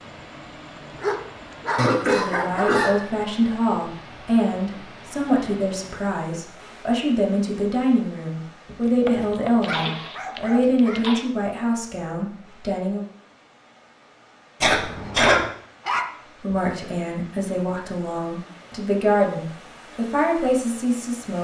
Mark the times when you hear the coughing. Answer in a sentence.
You can hear the coughing from 1.8 to 3.0 s, from 8.7 to 9.9 s and from 14.6 to 15.4 s.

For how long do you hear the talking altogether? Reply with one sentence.
The talking can be heard for 16 seconds in total.